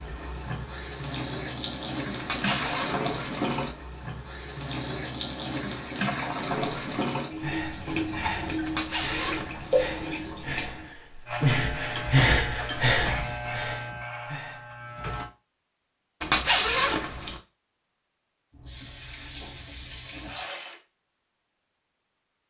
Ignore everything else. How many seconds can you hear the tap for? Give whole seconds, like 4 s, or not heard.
13 s.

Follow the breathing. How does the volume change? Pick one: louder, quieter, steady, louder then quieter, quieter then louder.
louder then quieter.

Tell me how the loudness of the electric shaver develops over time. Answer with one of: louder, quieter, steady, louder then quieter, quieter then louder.
quieter.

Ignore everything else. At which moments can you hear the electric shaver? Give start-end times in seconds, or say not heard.
11.2-15.3.